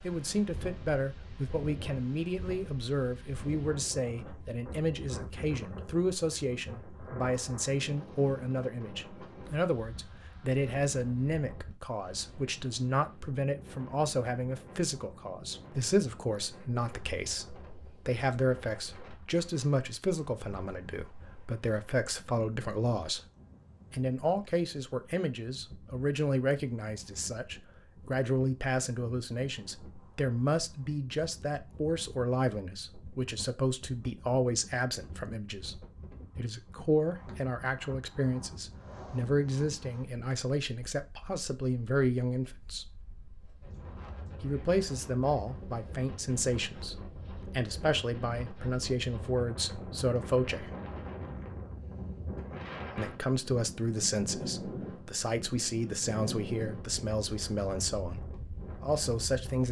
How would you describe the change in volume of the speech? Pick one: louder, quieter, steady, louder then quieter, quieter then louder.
steady.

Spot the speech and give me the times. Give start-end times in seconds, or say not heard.
0.0-23.2, 23.9-43.0, 44.4-50.8, 53.0-59.6.